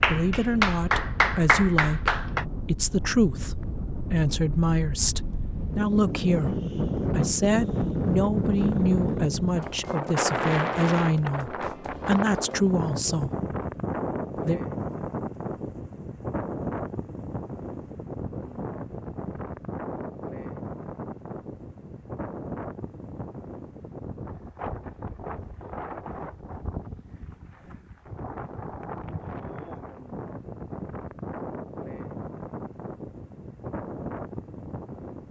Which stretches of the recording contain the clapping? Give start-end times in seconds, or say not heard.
0.0-2.5.